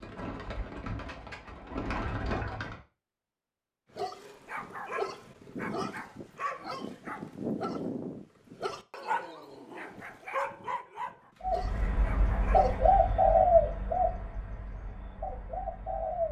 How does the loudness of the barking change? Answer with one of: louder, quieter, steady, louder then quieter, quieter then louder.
quieter.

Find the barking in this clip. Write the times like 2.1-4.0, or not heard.
4.0-12.8.